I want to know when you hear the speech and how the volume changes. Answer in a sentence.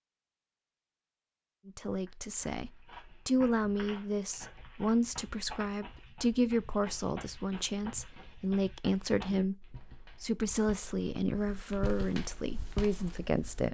The speech can be heard from 1.6 to 13.6 s, at a steady volume.